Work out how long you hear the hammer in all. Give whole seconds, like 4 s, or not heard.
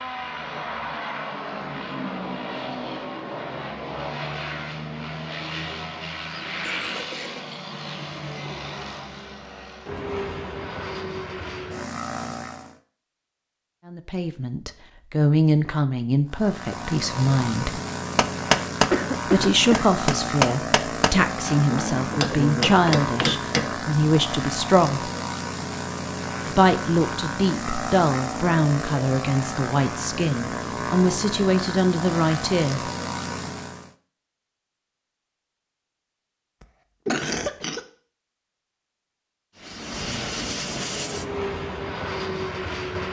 6 s.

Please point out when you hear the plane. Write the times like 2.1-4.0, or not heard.
0.0-12.8, 16.2-34.0, 39.5-43.0.